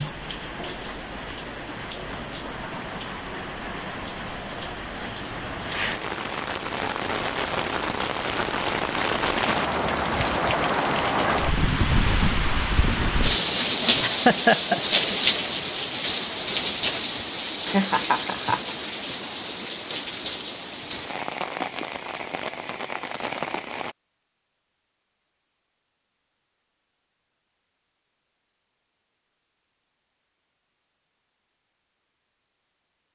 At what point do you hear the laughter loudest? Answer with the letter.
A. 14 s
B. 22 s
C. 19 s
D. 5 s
A.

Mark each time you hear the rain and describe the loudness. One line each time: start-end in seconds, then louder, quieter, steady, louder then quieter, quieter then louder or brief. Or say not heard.
0.0-23.9 louder then quieter.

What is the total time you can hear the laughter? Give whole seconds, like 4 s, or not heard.
2 s.